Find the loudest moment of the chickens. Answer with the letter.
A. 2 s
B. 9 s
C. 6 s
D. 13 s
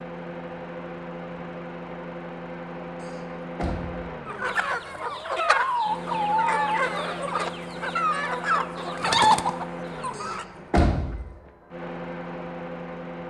B.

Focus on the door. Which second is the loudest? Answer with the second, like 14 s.
11 s.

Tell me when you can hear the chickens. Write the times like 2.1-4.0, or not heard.
4.2-10.4.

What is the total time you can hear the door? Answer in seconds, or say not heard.
2 s.